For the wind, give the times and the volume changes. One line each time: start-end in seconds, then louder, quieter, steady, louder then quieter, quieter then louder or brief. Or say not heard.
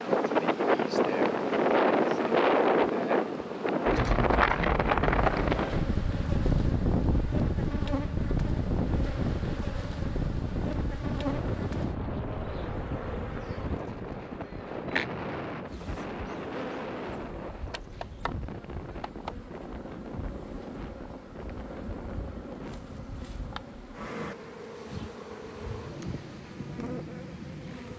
0.0-27.9 quieter.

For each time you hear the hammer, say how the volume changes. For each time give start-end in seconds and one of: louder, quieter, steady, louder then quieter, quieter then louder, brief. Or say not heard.
not heard.